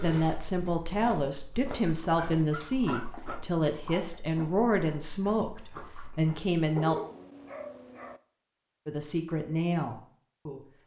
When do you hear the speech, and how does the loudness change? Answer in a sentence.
You can hear the speech from 0.0 to 7.0 s, at a steady volume; and briefly from 8.8 to 10.7 s.